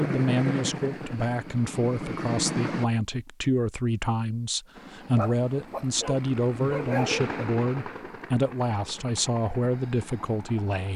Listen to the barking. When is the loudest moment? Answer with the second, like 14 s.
7 s.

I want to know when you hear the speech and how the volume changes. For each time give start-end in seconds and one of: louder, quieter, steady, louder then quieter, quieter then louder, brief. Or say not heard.
0.0-10.9 steady.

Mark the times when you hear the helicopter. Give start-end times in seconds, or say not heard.
0.0-2.9, 4.7-10.9.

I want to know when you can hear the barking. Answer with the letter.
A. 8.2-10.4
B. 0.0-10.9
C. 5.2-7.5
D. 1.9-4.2
C.